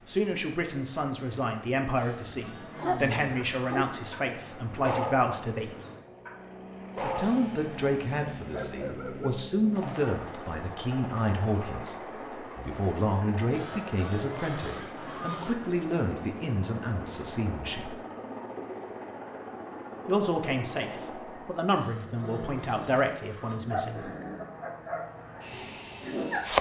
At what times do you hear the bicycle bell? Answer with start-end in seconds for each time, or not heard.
not heard.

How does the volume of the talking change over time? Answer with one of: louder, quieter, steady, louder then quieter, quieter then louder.
steady.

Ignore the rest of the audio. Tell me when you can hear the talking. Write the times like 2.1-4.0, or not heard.
0.1-5.8, 7.0-17.9, 20.1-24.1.